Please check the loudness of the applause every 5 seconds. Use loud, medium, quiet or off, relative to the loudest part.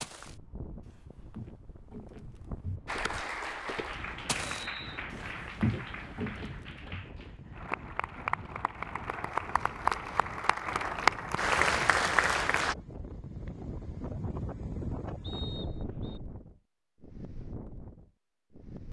medium, medium, loud, off.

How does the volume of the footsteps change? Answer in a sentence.
The volume of the footsteps goes up.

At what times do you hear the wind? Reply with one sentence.
The wind can be heard from 0.1 to 18.8 s.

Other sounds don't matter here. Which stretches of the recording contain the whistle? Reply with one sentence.
The whistle can be heard from 4.5 to 5.0 s and from 15.2 to 16.2 s.